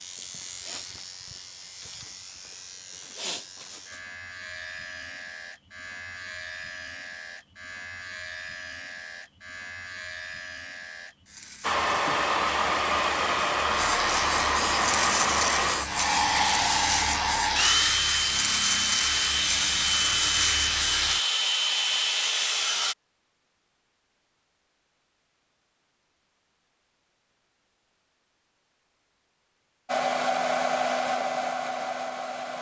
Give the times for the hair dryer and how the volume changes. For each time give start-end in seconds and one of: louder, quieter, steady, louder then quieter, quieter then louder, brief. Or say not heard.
11.6-22.9 steady
29.9-32.5 brief.